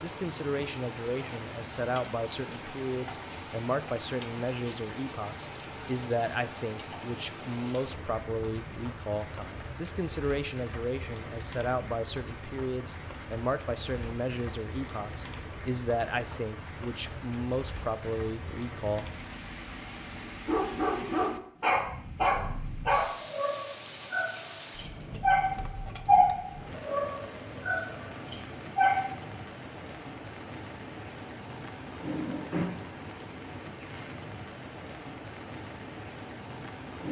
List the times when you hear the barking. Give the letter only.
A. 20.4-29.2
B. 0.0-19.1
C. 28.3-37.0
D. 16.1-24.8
A.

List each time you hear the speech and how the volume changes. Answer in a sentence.
You can hear the speech from 0.0 to 19.1 s, at a steady volume.